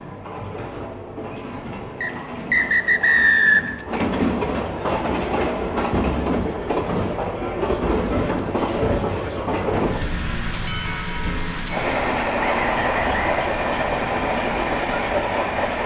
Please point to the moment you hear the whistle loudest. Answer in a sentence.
The volume of the whistle peaks at 3 seconds.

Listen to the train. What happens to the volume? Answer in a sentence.
The loudness of the train goes up.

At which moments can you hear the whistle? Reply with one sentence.
You can hear the whistle from 2.0 to 3.8 s and from 12.3 to 13.4 s.